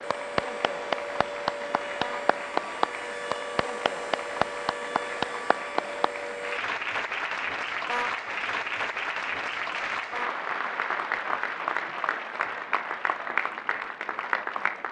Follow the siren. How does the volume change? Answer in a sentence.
The loudness of the siren stays about the same.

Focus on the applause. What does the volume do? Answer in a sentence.
The volume of the applause stays about the same.